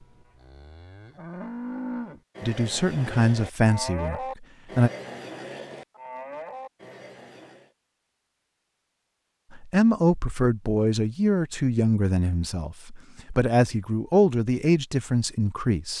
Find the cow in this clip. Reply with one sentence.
You can hear the cow from 0.0 to 7.8 s.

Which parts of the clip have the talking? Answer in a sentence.
The talking can be heard from 2.4 to 4.9 s and from 9.5 to 15.9 s.